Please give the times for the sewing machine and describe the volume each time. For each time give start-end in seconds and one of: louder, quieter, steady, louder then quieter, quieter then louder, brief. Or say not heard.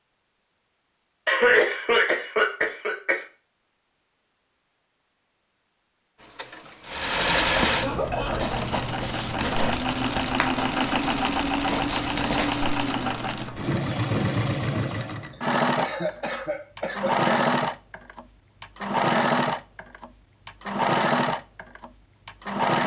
6.2-22.8 steady.